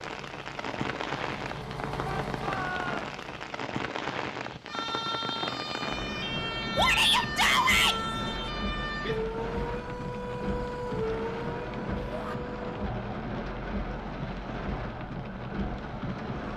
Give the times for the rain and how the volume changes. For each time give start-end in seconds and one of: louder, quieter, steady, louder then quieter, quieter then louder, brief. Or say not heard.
0.0-16.5 steady.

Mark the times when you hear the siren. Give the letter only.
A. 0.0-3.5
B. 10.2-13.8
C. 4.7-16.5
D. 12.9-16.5
C.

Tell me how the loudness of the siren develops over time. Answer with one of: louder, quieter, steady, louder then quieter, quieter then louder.
quieter.